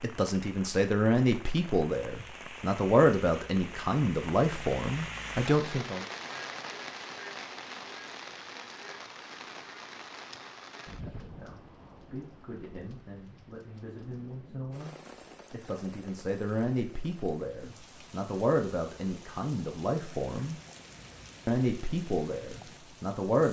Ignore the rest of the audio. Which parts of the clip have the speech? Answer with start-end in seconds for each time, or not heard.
0.0-6.0, 10.9-20.6, 21.4-23.4.